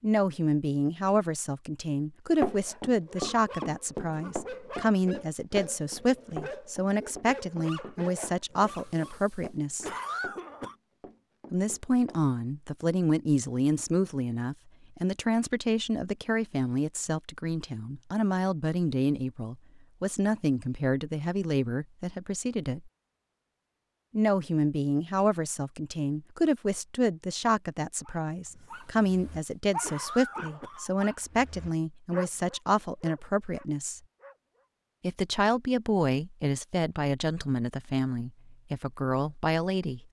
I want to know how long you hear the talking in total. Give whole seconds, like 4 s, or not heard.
36 s.